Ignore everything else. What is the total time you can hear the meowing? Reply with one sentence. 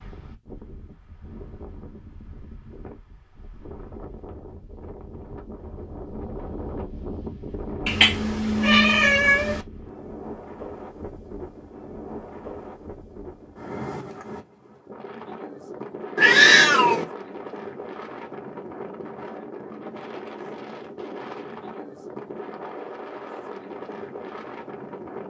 The meowing can be heard for 3 seconds in total.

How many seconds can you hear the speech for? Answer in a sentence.
The speech can't be heard in this clip.